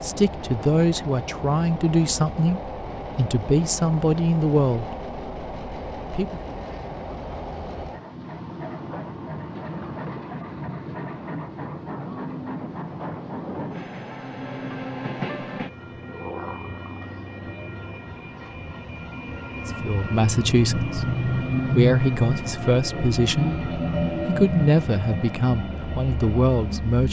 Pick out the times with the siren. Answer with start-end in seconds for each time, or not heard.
not heard.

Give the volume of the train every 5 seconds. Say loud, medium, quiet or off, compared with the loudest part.
medium, medium, medium, medium, loud, medium.